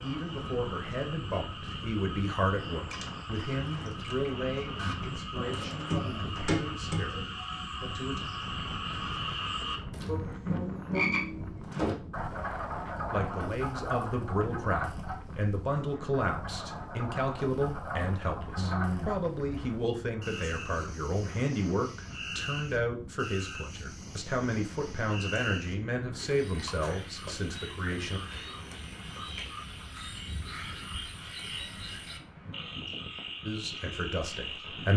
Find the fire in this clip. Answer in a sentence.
The fire can't be heard in this clip.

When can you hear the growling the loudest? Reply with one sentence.
The volume of the growling peaks at 19 seconds.